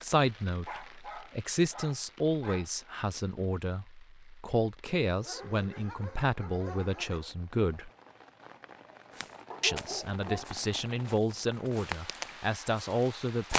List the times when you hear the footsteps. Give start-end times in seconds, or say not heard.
9.1-13.5.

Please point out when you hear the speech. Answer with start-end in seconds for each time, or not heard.
0.0-7.9, 9.6-13.5.